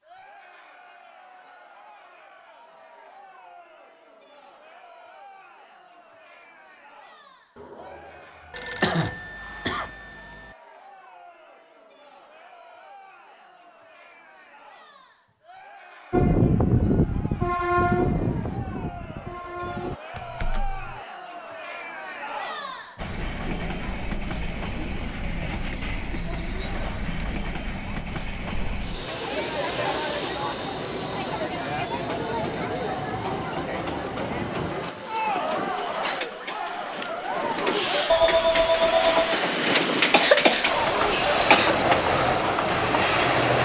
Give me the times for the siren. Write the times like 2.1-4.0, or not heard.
not heard.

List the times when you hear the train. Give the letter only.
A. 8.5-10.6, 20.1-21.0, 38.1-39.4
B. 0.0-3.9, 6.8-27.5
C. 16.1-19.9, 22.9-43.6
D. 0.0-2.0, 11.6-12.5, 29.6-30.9
C.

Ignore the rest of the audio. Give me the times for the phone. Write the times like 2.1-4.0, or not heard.
8.5-10.6, 20.1-21.0, 38.1-39.4.